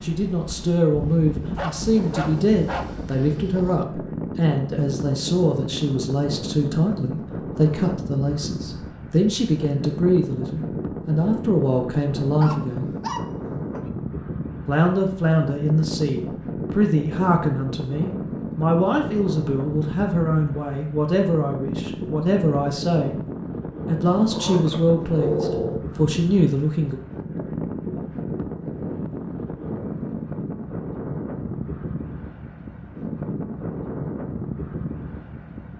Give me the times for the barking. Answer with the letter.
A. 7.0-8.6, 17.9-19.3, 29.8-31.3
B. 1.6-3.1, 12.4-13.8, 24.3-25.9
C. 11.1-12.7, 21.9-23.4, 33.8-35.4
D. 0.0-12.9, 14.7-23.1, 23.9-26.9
B.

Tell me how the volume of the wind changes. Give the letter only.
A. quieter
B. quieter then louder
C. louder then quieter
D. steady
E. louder
D.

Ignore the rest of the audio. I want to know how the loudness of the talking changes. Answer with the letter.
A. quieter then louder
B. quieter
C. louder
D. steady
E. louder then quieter
D.